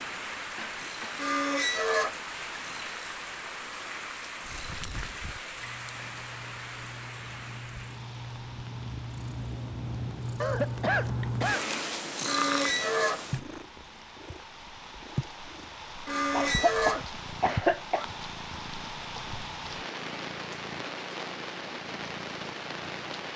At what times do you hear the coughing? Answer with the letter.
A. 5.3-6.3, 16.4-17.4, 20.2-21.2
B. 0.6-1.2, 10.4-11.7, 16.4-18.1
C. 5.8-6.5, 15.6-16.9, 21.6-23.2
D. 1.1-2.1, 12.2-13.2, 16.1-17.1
B.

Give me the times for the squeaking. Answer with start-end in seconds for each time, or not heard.
1.1-2.1, 12.2-13.2, 16.1-17.1.